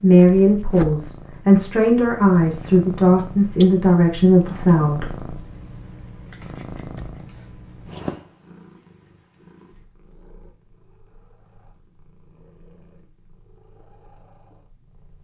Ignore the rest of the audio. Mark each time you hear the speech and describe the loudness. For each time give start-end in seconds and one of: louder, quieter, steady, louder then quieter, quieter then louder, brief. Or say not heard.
0.0-5.3 steady.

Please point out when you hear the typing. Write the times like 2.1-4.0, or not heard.
not heard.